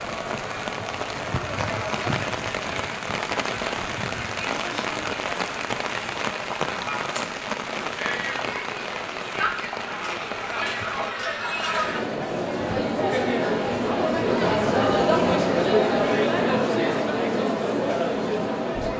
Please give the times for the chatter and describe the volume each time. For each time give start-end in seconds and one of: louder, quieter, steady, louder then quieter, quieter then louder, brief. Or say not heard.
0.0-18.9 louder.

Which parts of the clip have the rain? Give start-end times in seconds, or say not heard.
0.0-11.1.